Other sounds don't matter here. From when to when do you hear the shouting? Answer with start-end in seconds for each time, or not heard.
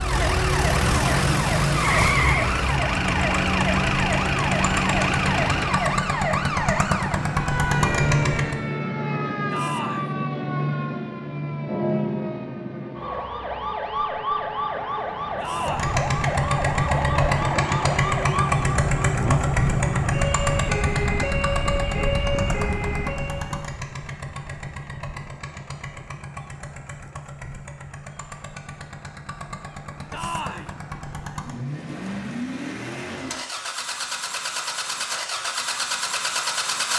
9.5-10.1, 15.3-15.9, 30.1-30.8.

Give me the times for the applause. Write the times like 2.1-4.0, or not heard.
not heard.